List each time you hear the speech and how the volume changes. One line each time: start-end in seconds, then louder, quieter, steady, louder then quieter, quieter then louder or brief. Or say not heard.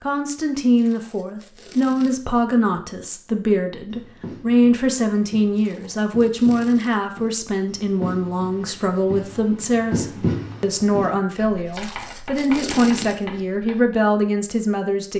0.0-15.1 steady.